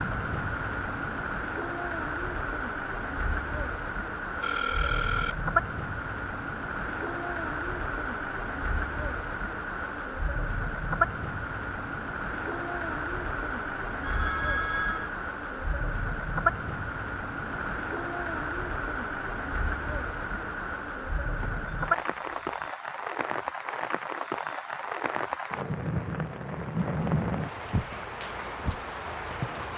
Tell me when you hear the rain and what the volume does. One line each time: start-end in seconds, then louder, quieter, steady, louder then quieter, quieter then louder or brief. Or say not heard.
0.0-29.7 steady.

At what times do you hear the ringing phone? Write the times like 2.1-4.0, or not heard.
4.4-5.3, 14.0-15.1, 21.4-22.7.